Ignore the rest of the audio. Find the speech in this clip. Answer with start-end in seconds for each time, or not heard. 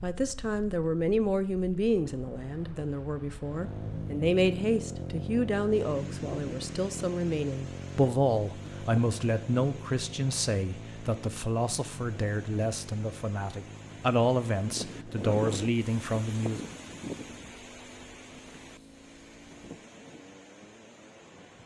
0.0-16.6.